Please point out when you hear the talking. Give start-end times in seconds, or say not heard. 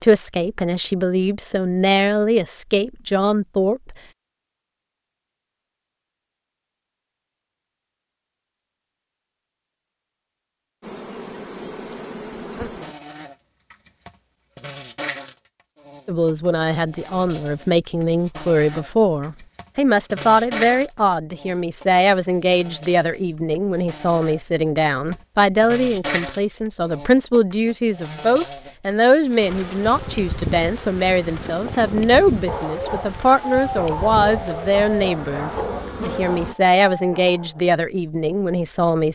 0.0-4.0, 16.1-39.0.